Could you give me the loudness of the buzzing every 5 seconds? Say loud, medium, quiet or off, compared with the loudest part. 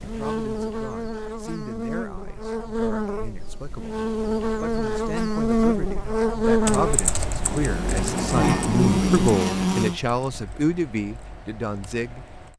medium, loud, off.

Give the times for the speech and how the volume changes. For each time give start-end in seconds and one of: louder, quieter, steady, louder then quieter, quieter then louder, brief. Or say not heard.
0.0-12.5 louder.